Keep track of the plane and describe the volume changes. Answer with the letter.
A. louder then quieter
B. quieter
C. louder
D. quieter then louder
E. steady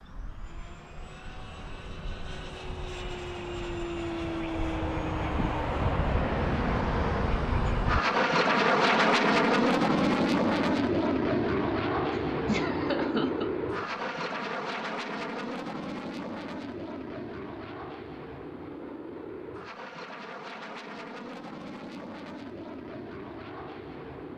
A.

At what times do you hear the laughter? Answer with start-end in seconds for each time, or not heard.
12.4-13.5.